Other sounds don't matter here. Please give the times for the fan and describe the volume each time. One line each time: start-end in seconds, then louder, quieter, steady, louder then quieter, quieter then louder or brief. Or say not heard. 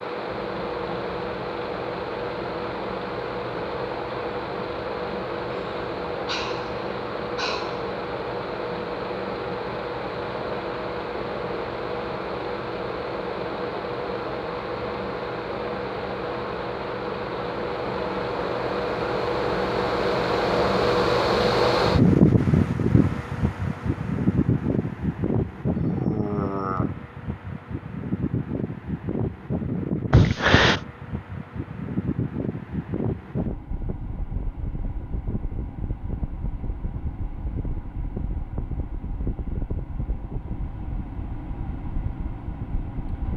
0.0-43.3 louder then quieter.